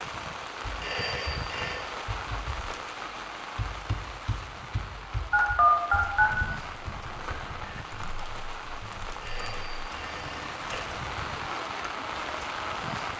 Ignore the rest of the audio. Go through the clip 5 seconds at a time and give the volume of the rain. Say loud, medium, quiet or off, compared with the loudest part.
loud, medium, loud.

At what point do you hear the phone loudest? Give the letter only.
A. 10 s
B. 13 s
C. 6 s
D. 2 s
C.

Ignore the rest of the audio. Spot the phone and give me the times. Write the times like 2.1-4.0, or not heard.
0.8-1.9, 5.3-6.3, 9.2-10.8.